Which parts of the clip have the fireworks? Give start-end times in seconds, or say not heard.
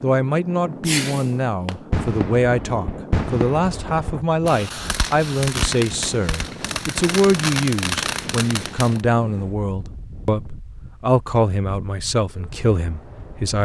0.8-9.0.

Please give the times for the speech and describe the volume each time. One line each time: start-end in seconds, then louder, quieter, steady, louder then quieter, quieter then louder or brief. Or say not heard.
0.0-13.6 steady.